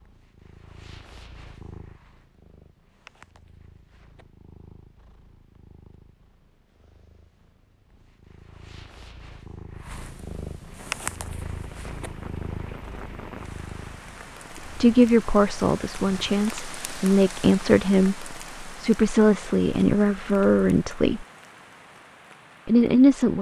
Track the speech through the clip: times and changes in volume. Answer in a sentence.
You can hear the speech from 14.7 to 21.2 s, at a steady volume; and briefly from 22.6 to 23.3 s.